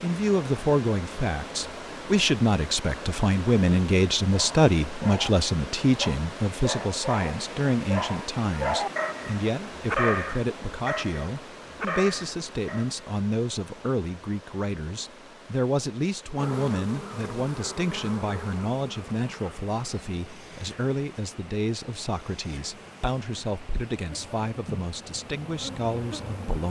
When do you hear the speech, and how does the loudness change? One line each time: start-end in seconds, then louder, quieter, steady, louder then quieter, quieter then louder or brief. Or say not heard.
0.0-26.6 quieter.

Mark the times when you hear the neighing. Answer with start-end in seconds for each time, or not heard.
not heard.